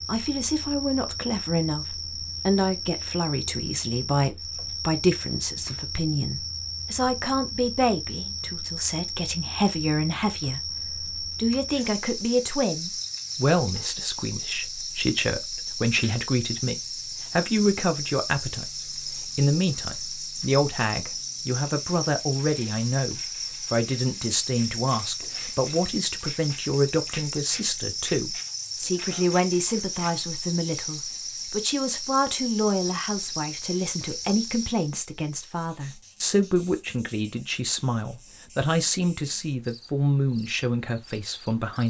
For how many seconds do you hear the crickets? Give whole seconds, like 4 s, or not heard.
42 s.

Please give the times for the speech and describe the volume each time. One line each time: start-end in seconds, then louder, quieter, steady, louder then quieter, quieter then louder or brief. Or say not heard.
0.1-41.8 steady.